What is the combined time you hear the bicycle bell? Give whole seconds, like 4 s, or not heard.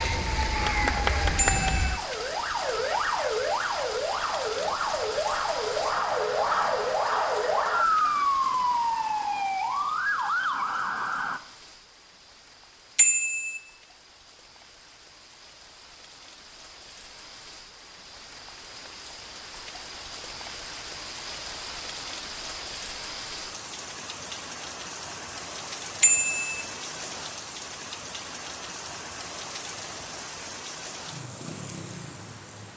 2 s.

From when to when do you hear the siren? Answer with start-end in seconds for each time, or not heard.
0.0-11.4.